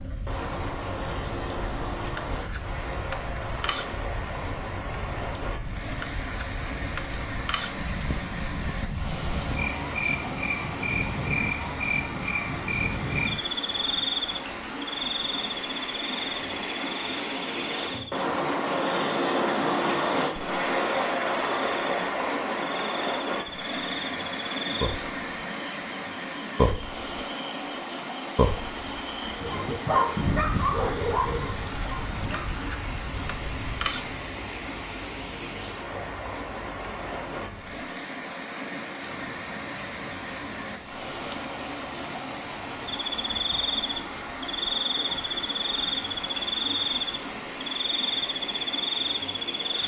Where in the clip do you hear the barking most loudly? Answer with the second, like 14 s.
30 s.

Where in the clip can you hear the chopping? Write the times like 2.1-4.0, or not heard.
not heard.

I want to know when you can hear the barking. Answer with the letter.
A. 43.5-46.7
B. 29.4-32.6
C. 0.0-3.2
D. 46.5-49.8
B.